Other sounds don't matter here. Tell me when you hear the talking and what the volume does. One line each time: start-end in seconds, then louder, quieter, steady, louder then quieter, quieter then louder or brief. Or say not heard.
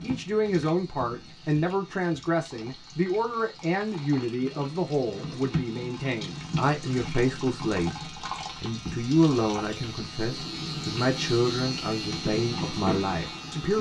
0.0-13.7 steady.